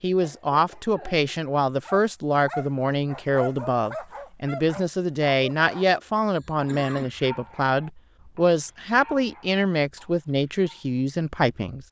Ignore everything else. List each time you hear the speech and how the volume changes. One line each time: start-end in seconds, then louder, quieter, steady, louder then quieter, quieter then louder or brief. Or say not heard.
0.0-11.8 steady.